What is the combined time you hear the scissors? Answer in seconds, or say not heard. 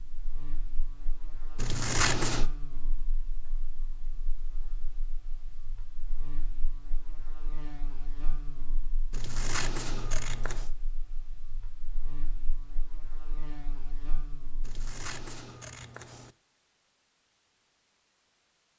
4 s.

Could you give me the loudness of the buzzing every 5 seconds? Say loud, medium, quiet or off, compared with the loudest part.
loud, loud, loud, off.